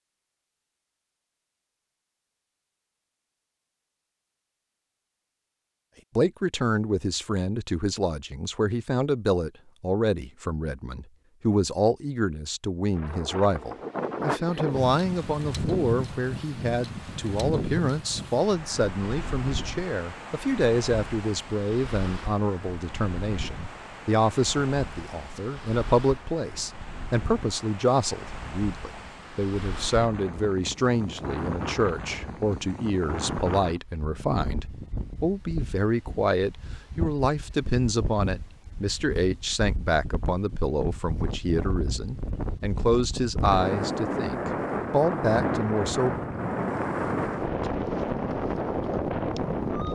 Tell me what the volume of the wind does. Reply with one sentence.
The volume of the wind goes down, then up.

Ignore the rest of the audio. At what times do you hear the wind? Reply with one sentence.
You can hear the wind from 12.9 to 49.9 s.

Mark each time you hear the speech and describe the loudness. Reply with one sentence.
The speech can be heard from 6.2 to 46.2 s, at a steady volume.